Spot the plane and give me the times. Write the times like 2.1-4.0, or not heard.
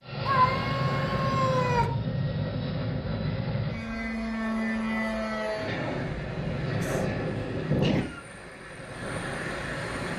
0.0-10.1.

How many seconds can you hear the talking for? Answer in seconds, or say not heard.
not heard.